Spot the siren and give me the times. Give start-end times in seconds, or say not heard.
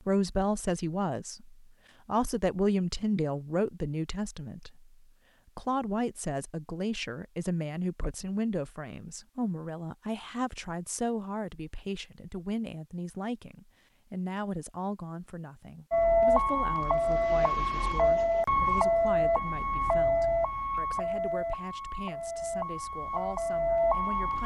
15.9-24.4.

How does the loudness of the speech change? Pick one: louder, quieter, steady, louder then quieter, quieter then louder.
quieter.